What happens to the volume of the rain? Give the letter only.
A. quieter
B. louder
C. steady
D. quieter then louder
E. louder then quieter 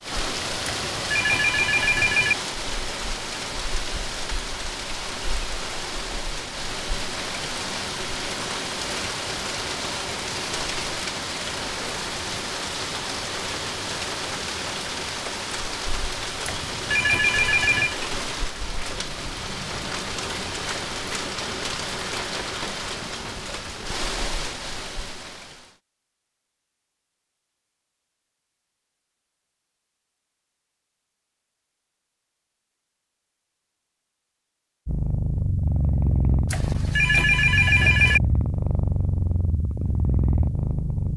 C.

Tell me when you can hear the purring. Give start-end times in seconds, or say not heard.
34.9-41.1.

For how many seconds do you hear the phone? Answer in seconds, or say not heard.
5 s.